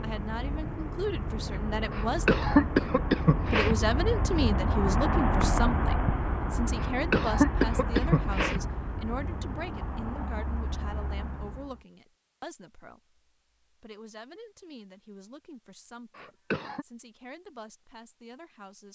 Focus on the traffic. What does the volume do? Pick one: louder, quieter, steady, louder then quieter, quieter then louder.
louder then quieter.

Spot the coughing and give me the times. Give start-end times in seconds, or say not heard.
1.9-3.8, 6.8-8.6, 16.1-16.9.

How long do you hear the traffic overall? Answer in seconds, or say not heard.
12 s.